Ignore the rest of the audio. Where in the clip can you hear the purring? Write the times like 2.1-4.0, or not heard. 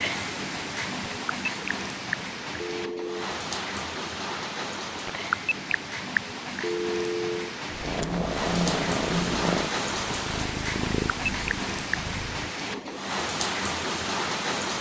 7.7-12.4.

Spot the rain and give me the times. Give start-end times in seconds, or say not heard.
0.0-14.7.